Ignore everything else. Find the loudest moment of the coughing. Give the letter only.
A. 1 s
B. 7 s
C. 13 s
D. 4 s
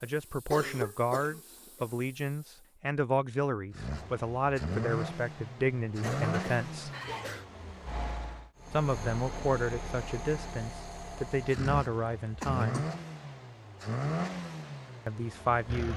A.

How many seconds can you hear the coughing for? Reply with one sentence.
The coughing can be heard for 3 seconds in total.